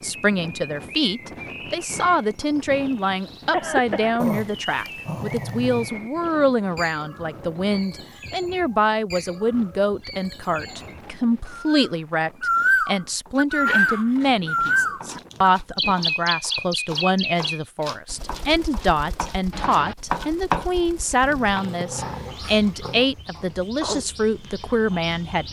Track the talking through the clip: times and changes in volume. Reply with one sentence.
You can hear the talking from 0.0 to 25.4 s, at a steady volume.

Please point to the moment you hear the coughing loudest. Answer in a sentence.
The volume of the coughing peaks at 4 seconds.